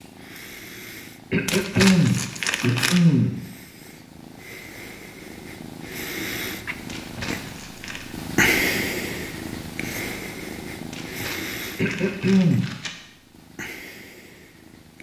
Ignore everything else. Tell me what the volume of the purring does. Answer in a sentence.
The loudness of the purring goes up, then down.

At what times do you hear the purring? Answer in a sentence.
You can hear the purring from 0.0 to 14.9 s.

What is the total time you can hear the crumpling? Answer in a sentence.
The crumpling can be heard for 5 seconds in total.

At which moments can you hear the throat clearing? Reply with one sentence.
The throat clearing can be heard from 1.3 to 3.4 s and from 11.8 to 12.7 s.